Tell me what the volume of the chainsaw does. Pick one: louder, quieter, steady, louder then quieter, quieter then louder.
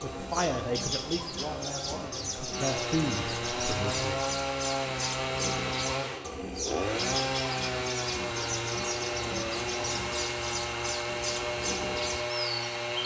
louder.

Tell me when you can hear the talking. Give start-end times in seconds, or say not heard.
0.0-4.2.